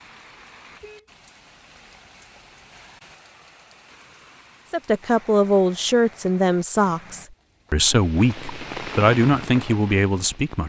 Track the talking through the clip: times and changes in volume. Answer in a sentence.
You can hear the talking from 4.7 to 10.6 s, at a steady volume.